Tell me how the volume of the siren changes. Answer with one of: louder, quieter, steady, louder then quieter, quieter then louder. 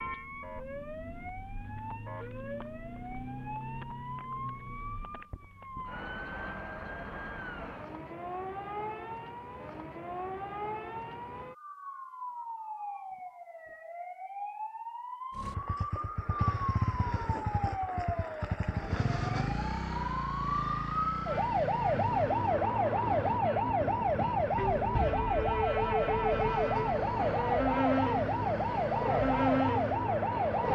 louder.